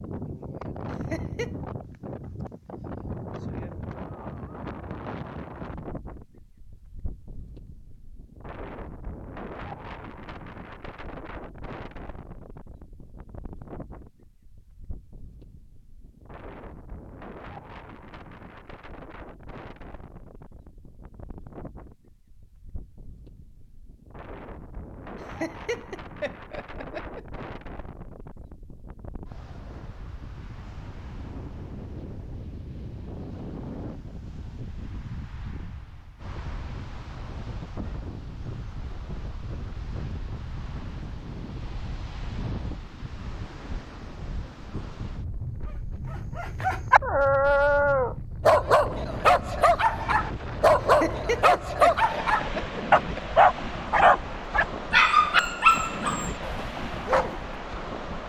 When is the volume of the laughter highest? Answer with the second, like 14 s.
51 s.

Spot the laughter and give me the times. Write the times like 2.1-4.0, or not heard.
1.1-1.6, 25.4-27.2, 51.0-53.2.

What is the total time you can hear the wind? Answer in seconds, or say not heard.
58 s.